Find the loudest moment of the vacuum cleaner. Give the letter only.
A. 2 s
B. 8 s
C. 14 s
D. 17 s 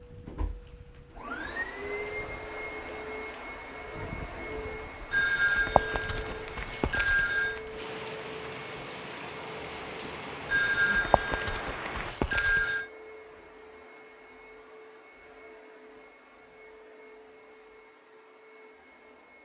A.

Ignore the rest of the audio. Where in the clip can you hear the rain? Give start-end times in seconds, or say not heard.
0.0-12.2.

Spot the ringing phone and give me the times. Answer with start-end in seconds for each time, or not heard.
5.1-7.6, 10.4-12.8.